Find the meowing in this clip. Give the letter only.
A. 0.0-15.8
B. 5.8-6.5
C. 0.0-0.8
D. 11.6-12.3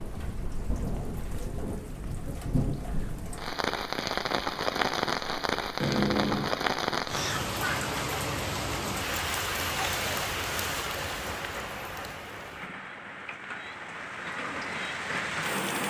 B.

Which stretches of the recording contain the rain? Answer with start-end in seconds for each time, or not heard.
0.0-15.8.